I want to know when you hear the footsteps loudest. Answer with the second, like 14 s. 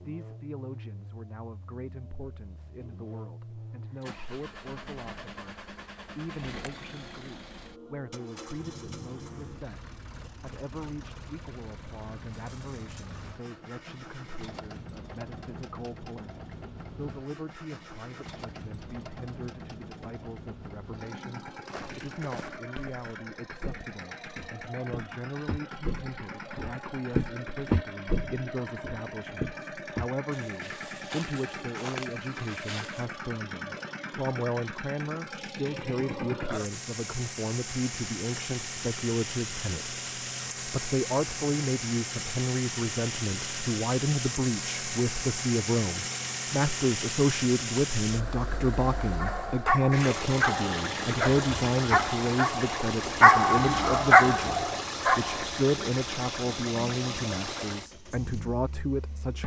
28 s.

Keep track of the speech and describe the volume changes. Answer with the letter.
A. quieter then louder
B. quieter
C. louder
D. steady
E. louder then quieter
C.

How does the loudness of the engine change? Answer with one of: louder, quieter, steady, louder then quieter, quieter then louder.
louder.